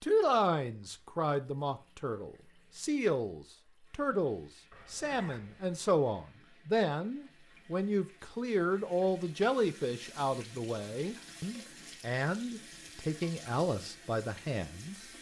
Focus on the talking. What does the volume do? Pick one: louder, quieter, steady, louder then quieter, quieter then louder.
steady.